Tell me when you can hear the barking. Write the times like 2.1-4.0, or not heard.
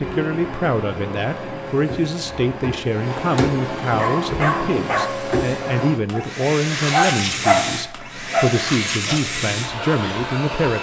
4.0-5.2, 6.1-9.2.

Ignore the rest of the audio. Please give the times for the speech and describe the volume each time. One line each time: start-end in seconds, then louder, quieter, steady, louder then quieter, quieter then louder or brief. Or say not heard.
0.0-10.7 steady.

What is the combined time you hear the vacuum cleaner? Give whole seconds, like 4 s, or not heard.
11 s.